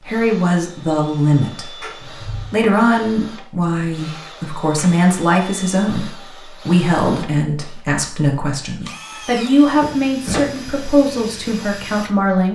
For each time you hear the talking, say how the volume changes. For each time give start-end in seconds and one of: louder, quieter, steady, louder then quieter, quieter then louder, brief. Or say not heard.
0.1-12.5 steady.